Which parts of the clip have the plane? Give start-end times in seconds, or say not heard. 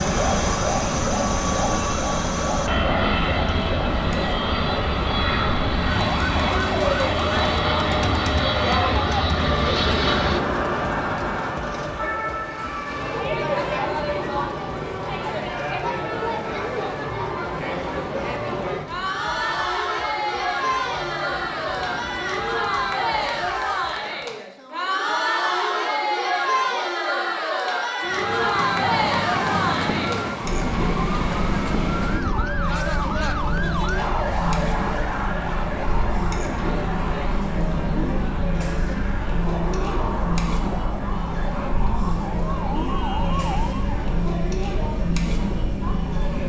0.0-10.4, 34.4-46.4.